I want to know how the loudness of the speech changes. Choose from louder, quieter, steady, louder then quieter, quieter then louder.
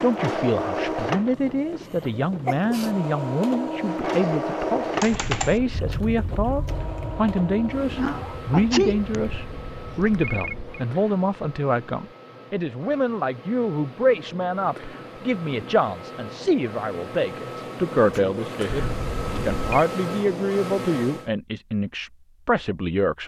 steady.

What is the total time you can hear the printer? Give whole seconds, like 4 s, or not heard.
21 s.